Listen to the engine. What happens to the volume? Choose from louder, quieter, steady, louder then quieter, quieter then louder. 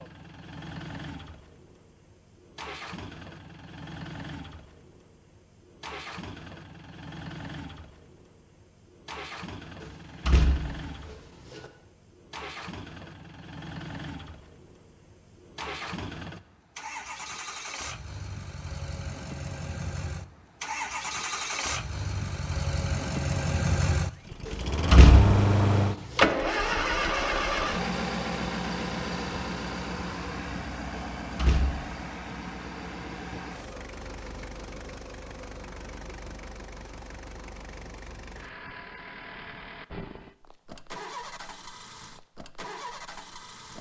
louder then quieter.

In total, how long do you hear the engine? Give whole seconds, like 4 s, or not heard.
44 s.